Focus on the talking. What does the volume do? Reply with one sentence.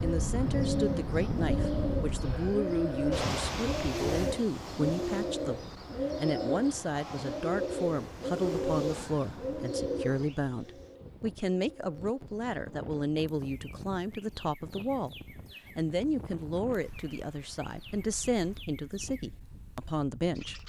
The volume of the talking stays about the same.